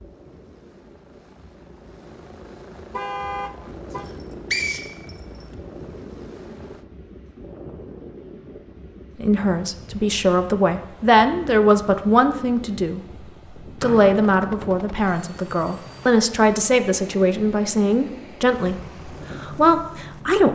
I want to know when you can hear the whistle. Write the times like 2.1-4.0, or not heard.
3.9-5.5, 13.8-14.3.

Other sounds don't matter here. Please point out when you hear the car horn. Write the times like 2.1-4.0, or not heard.
2.9-4.0.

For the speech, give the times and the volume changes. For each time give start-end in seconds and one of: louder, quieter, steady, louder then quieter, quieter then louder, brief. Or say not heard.
9.2-20.4 steady.